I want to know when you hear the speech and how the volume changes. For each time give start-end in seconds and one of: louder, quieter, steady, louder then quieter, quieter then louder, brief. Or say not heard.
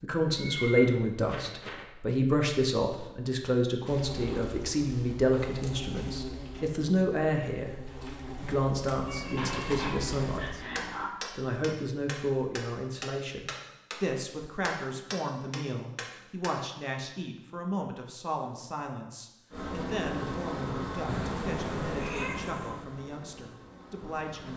0.0-24.5 quieter.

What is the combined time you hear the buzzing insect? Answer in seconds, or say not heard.
12 s.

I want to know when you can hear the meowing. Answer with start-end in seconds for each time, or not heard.
0.3-1.9, 9.1-11.1, 21.1-22.8.